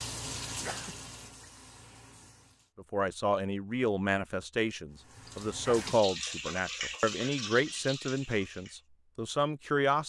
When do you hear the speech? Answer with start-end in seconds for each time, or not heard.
2.8-10.0.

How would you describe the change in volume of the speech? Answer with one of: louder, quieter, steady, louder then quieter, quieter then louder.
steady.